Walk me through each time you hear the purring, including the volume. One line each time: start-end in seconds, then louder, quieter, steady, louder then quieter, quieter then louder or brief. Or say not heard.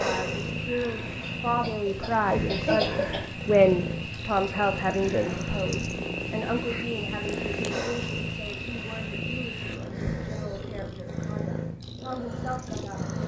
0.0-13.2 steady.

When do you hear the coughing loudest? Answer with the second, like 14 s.
3 s.